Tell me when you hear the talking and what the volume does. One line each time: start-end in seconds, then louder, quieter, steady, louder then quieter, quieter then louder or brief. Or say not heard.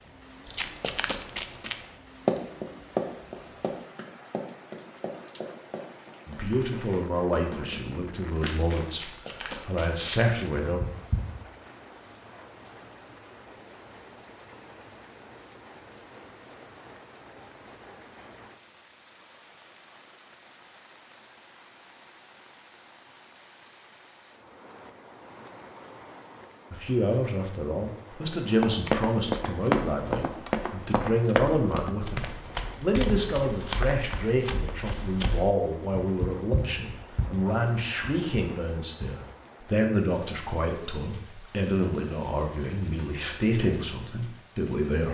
6.2-10.8 quieter then louder
26.7-45.0 steady.